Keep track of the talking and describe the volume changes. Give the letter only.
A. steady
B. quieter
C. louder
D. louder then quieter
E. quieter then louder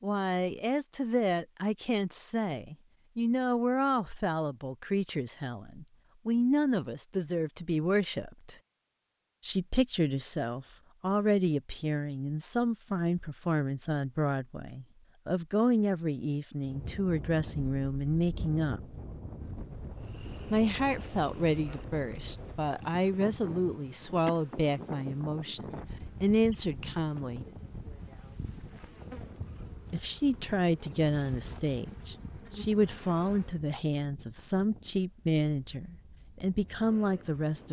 A.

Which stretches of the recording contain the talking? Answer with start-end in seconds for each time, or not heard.
0.0-8.6, 9.4-18.9, 20.5-27.4, 29.9-37.6.